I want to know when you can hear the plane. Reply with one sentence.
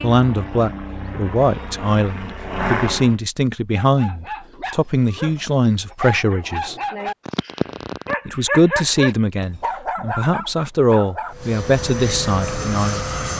The plane can be heard from 0.0 to 3.1 s and from 11.3 to 13.3 s.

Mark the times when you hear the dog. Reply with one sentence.
You can hear the dog from 3.8 to 11.3 s.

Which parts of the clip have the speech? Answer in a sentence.
The speech can be heard from 0.0 to 6.8 s and from 8.2 to 13.1 s.